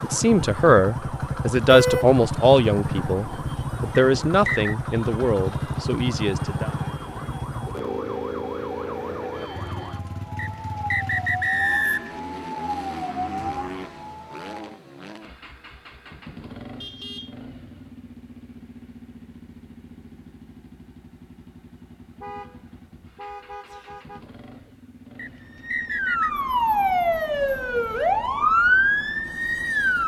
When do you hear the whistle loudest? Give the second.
12 s.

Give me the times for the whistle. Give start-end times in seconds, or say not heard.
4.0-4.8, 10.3-12.2, 25.1-26.3.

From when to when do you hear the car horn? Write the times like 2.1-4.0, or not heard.
1.6-2.1, 16.8-17.4, 22.2-24.7.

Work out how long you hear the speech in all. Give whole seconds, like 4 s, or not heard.
7 s.